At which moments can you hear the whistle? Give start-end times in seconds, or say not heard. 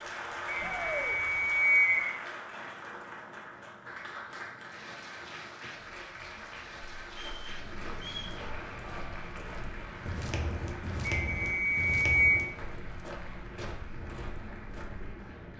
0.5-2.1, 7.2-8.3, 11.1-12.4.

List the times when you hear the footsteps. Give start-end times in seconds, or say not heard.
7.0-15.1.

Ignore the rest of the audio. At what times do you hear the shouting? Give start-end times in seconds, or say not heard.
0.6-1.1.